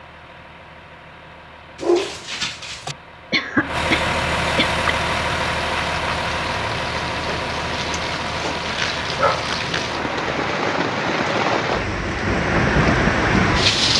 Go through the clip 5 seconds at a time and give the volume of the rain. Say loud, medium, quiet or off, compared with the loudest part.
off, medium, loud.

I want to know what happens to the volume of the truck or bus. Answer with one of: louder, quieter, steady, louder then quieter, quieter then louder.
louder then quieter.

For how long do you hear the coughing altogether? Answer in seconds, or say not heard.
2 s.